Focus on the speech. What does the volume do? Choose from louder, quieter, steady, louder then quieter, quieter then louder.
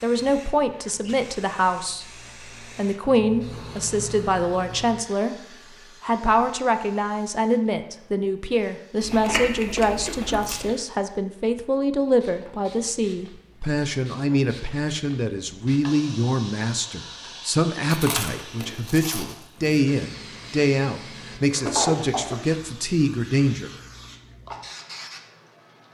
steady.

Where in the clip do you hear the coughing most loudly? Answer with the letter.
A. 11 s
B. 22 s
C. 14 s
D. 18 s
B.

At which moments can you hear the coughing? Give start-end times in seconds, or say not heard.
10.1-10.8, 21.4-22.4.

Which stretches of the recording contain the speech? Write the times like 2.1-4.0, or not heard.
0.0-5.3, 6.0-23.7.